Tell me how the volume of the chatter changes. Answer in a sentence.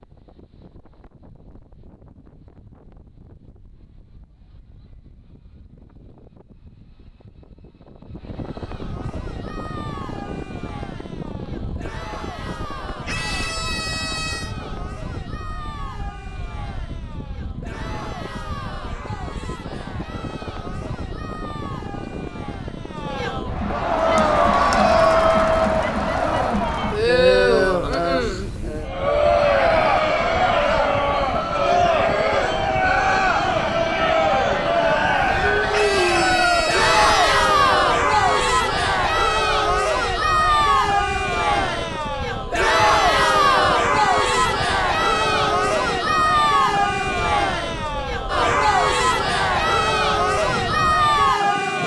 The loudness of the chatter goes up.